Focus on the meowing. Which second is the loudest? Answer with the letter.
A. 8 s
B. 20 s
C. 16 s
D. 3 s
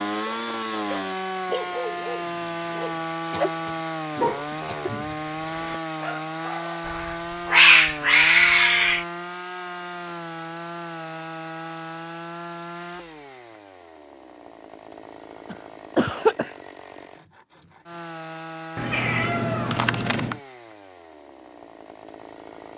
A.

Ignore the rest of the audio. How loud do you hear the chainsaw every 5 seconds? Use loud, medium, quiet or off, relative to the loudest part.
loud, loud, medium, medium, quiet.